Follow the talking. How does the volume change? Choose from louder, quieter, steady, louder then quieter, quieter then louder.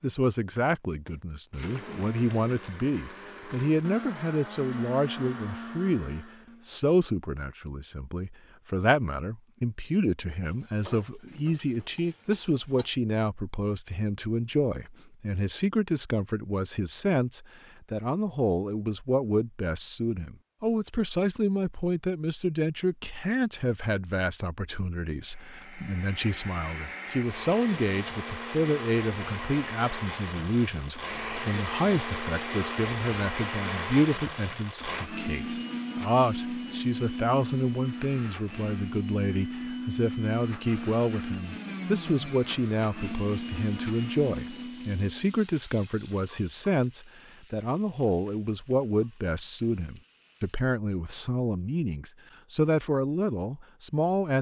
steady.